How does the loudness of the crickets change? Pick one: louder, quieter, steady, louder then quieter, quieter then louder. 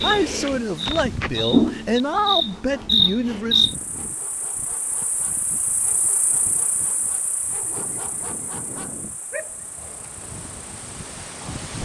quieter.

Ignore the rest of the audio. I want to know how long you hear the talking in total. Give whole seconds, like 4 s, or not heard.
4 s.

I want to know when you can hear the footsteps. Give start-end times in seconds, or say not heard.
not heard.